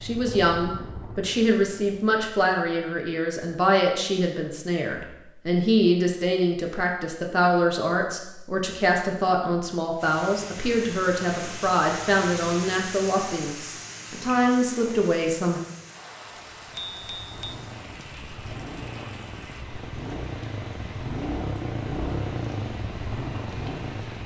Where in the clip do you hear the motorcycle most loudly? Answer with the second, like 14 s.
22 s.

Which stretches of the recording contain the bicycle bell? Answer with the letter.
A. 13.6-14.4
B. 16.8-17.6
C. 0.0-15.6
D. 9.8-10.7
B.